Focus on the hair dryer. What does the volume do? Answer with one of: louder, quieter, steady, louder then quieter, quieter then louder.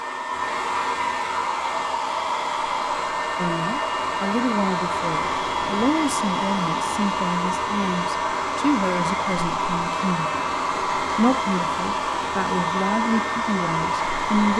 steady.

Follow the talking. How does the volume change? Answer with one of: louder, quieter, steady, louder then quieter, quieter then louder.
steady.